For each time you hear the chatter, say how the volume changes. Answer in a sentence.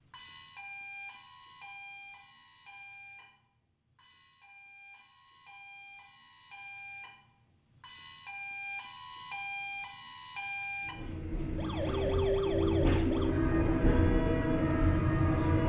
The chatter can't be heard in this clip.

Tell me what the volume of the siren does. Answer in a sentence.
The volume of the siren goes down, then up.